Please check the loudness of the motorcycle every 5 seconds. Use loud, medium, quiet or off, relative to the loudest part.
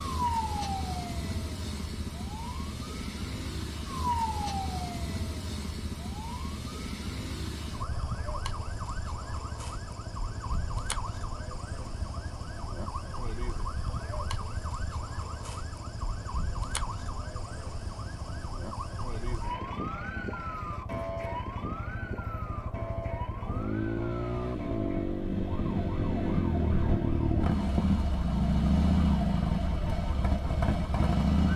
quiet, quiet, quiet, quiet, medium, loud, loud.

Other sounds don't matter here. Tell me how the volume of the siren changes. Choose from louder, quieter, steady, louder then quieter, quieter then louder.
quieter.